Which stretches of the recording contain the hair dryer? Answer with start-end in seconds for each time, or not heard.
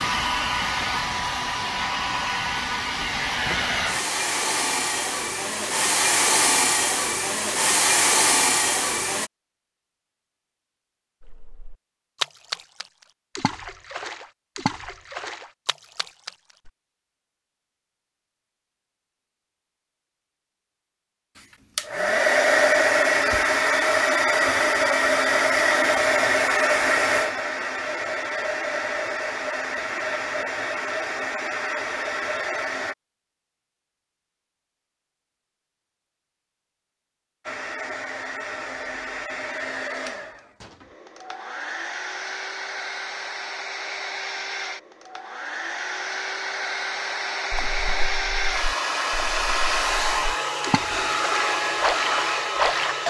0.0-9.3, 21.8-33.0, 37.5-53.0.